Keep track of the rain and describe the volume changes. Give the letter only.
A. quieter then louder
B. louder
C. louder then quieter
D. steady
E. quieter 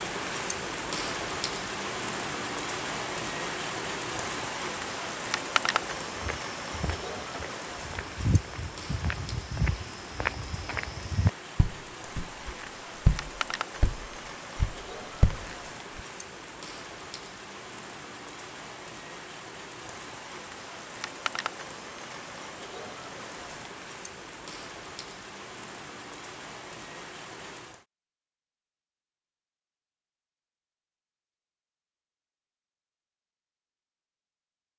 E.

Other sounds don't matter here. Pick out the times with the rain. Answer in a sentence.
The rain can be heard from 0.0 to 27.9 s.